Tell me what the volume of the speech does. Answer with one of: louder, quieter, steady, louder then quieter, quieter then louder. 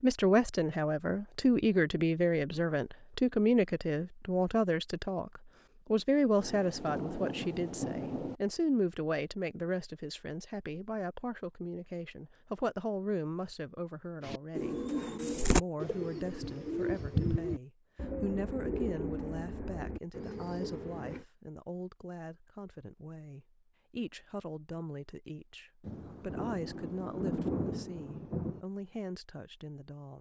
quieter.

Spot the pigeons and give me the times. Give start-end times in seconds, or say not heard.
14.2-21.2.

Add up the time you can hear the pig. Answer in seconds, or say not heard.
not heard.